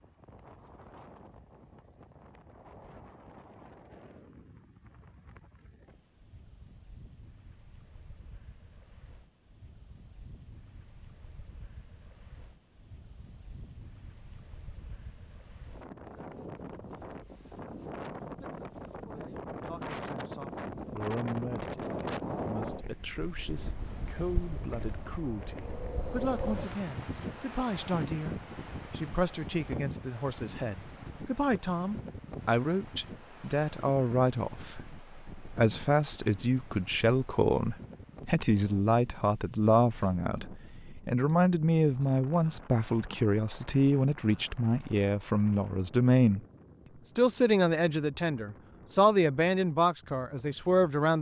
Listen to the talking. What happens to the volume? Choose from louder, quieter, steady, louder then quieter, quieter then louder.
louder.